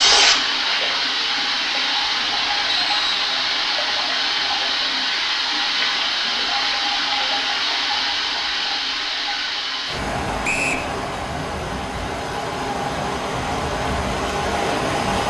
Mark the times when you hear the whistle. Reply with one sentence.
You can hear the whistle from 2.6 to 3.5 s and from 10.4 to 10.8 s.